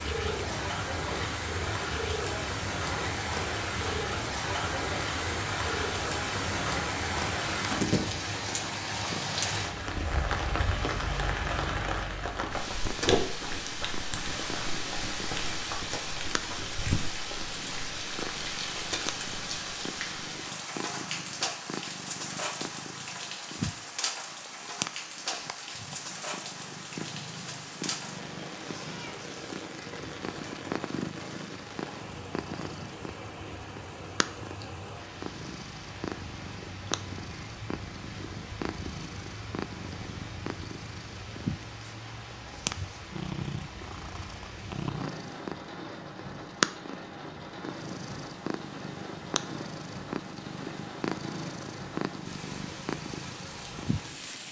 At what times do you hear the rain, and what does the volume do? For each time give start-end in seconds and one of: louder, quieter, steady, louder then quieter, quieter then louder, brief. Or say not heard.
0.0-54.4 quieter.